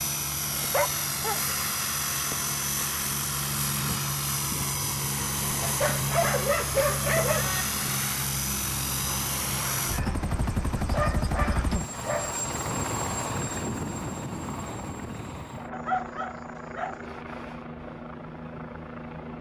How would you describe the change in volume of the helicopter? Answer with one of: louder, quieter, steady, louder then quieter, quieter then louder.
quieter.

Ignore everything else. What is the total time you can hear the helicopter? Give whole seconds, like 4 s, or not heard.
19 s.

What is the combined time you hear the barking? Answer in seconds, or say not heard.
6 s.